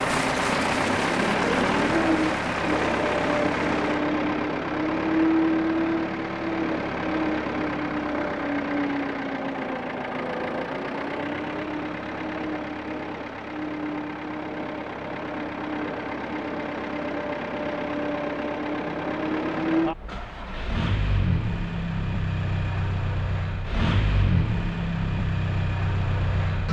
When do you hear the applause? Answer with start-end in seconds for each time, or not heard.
0.0-4.0.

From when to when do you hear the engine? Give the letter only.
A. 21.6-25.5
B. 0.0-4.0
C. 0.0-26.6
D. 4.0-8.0
C.